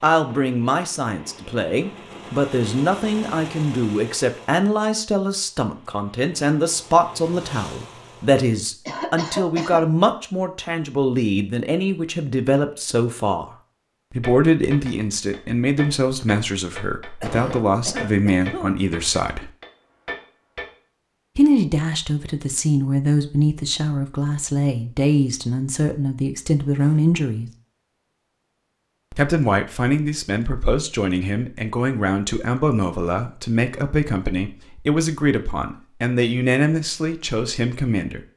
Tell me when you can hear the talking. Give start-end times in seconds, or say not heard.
0.0-13.5, 14.1-19.5, 21.4-27.5, 29.1-38.2.